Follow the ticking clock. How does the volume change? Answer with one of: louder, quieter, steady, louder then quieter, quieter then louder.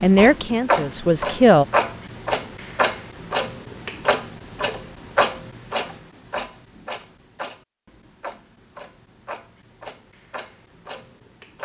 quieter.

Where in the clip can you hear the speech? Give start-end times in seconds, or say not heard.
0.0-1.6.